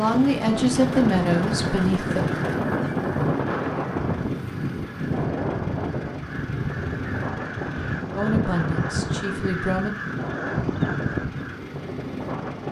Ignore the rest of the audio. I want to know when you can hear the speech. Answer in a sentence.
You can hear the speech from 0.0 to 2.3 s and from 8.2 to 9.9 s.